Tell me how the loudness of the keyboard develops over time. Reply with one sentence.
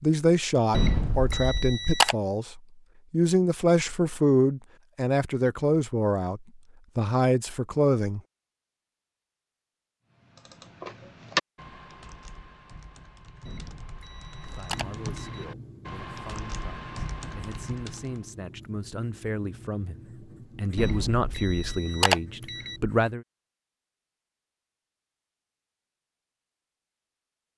The volume of the keyboard goes down, then up.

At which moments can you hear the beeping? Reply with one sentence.
You can hear the beeping from 0.7 to 2.1 s, from 13.4 to 15.4 s and from 20.8 to 22.8 s.